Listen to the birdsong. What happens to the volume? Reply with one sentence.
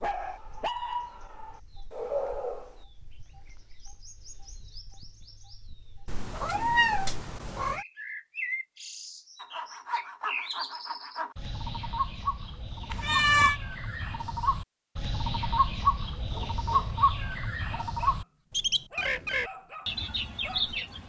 The loudness of the birdsong goes up.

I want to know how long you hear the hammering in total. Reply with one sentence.
You can't hear the hammering here.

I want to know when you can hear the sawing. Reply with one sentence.
The sawing can be heard from 9.4 to 11.3 s.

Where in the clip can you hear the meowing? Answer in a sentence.
The meowing can be heard from 6.0 to 7.8 s and from 12.9 to 13.6 s.